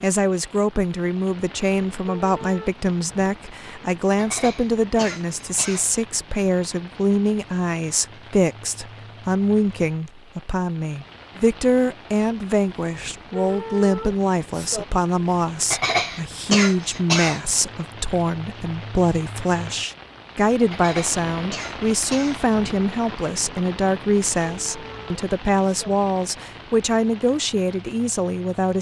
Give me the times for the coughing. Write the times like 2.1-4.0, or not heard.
4.2-6.0, 15.7-17.6, 20.7-22.6.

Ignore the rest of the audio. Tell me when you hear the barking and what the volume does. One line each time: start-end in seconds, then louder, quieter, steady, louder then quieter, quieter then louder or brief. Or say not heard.
not heard.